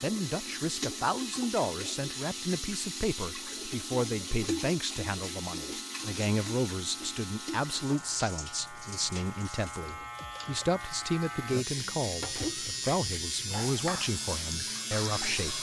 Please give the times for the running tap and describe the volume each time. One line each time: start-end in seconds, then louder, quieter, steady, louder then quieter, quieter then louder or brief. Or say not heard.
0.0-15.5 quieter then louder.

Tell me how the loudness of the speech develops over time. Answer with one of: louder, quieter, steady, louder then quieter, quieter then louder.
steady.